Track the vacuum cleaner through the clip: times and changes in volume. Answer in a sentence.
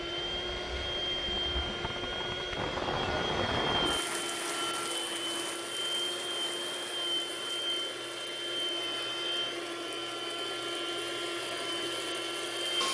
The vacuum cleaner can be heard from 0.0 to 12.8 s, at a steady volume.